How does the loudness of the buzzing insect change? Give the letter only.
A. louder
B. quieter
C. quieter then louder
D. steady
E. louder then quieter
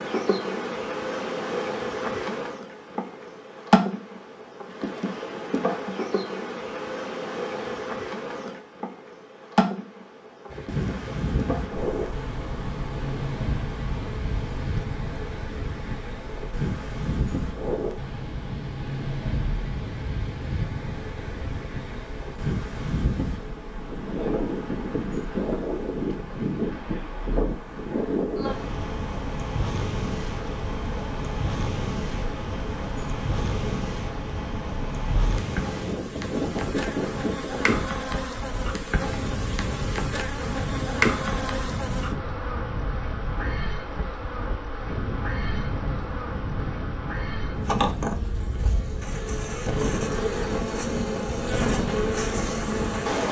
C.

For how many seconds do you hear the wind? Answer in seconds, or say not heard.
43 s.